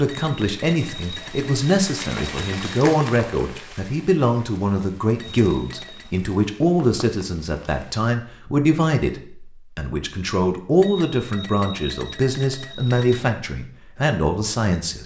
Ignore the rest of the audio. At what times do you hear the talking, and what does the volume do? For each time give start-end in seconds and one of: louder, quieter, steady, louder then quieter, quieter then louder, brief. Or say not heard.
0.0-15.0 steady.